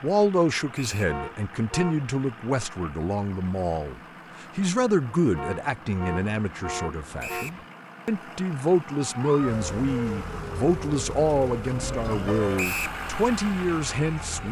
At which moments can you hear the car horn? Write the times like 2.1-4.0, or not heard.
1.1-2.1, 5.3-7.7, 11.8-12.7.